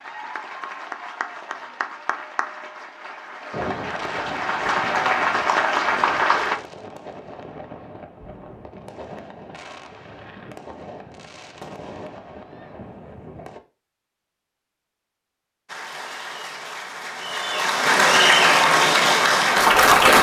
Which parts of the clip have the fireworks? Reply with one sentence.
The fireworks can be heard from 3.5 to 13.6 s.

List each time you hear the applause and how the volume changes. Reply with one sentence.
You can hear the applause from 0.0 to 6.6 s, getting louder; and from 15.7 to 20.1 s, getting louder.